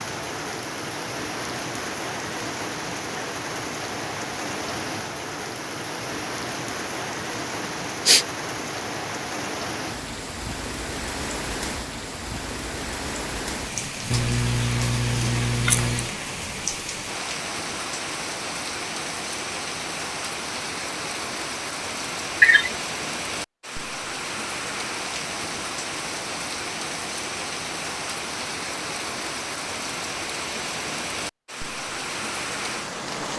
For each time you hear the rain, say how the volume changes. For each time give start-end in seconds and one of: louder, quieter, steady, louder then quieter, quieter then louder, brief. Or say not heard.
0.0-33.3 steady.